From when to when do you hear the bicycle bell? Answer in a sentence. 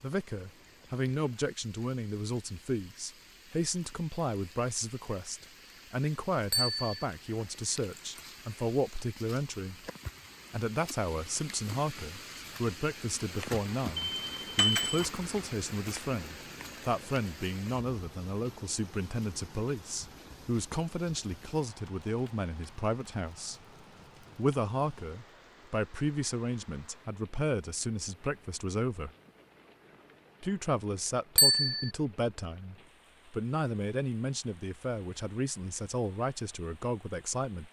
You can hear the bicycle bell from 6.5 to 7.0 s, from 14.1 to 15.1 s and from 31.4 to 31.9 s.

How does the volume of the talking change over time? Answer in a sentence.
The volume of the talking stays about the same.